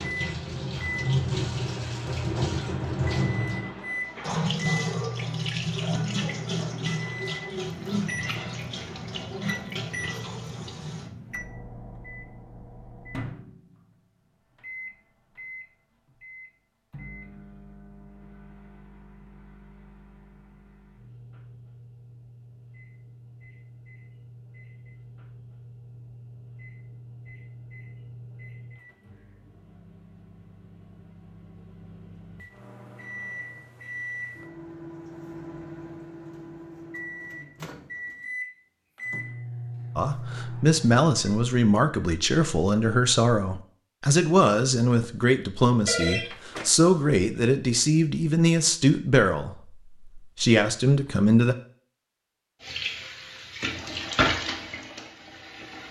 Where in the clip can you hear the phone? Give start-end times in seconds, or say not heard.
45.9-47.0.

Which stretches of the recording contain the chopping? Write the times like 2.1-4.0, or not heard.
not heard.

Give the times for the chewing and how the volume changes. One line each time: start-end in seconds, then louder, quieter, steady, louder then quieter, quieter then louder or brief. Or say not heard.
not heard.